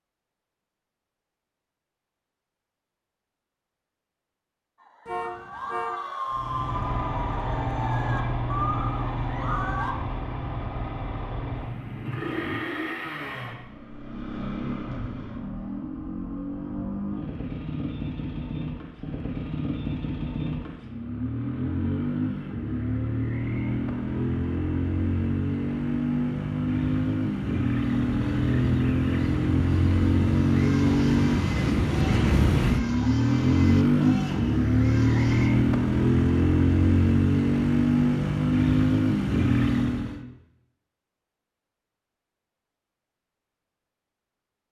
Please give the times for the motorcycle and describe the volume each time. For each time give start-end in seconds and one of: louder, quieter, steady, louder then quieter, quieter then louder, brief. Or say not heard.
6.3-40.2 louder.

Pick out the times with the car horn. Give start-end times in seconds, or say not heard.
5.0-6.0.